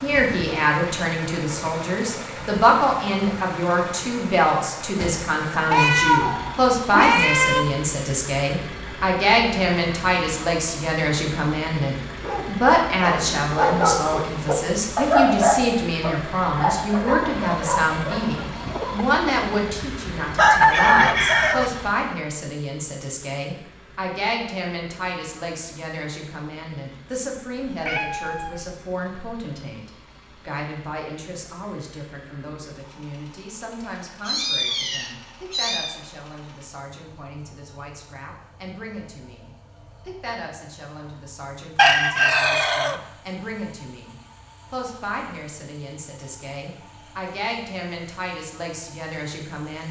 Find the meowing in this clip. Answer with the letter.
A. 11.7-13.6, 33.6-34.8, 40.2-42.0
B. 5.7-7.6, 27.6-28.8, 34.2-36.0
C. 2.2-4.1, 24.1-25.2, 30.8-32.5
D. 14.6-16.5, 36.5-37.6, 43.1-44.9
B.